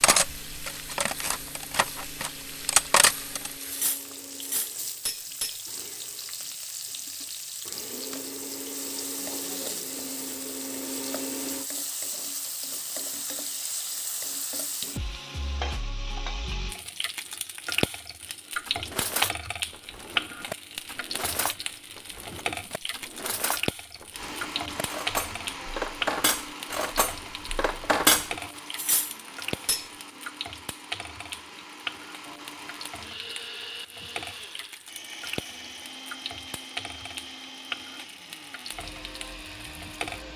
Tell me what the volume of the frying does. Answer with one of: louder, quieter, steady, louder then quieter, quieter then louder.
louder then quieter.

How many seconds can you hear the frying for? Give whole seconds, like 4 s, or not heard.
40 s.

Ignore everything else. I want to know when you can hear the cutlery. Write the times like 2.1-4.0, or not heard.
0.0-5.6, 18.6-29.9.